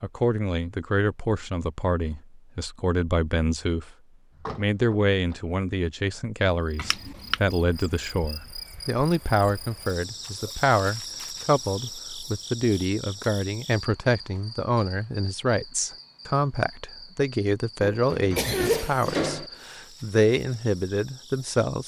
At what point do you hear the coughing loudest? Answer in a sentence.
The volume of the coughing peaks at 19 seconds.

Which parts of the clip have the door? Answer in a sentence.
The door can be heard from 4.3 to 5.5 s and from 18.1 to 19.5 s.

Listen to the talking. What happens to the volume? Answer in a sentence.
The loudness of the talking stays about the same.